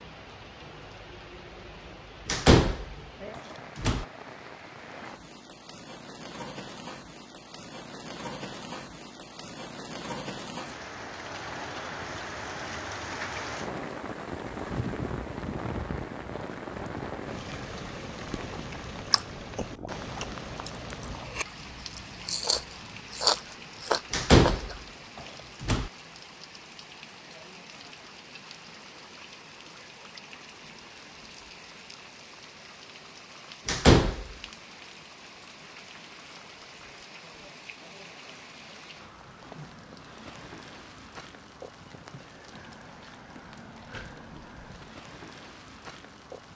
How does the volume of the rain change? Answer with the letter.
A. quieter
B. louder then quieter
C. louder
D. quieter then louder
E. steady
B.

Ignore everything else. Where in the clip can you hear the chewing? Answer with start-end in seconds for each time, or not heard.
18.4-24.8.